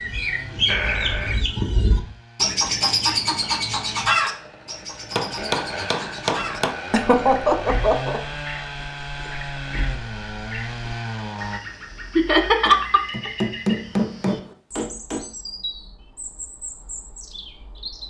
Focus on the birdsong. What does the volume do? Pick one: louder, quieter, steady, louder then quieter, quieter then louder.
quieter.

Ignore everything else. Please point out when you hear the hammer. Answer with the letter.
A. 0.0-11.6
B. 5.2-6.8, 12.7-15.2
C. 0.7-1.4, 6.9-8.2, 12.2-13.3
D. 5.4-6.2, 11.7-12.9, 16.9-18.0
B.